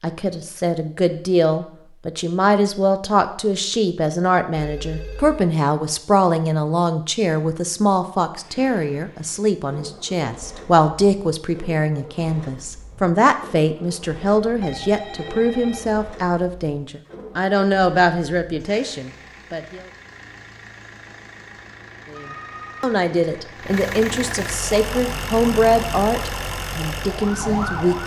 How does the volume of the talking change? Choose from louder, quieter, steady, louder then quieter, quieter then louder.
steady.